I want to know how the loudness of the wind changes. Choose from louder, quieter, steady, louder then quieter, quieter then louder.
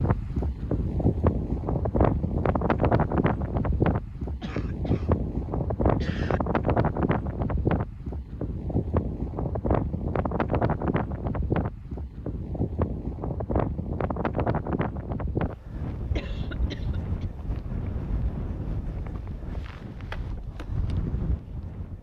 quieter.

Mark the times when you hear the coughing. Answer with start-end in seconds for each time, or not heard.
4.4-5.2, 6.0-6.4, 16.1-17.2.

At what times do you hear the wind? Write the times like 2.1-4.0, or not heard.
0.0-21.9.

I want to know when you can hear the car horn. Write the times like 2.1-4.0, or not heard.
not heard.